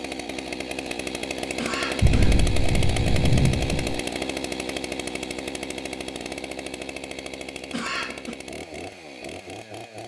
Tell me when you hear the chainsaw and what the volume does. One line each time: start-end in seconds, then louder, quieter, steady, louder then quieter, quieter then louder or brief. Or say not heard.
0.0-10.0 quieter.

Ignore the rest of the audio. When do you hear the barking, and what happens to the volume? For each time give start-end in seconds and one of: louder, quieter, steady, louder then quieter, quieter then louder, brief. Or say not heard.
not heard.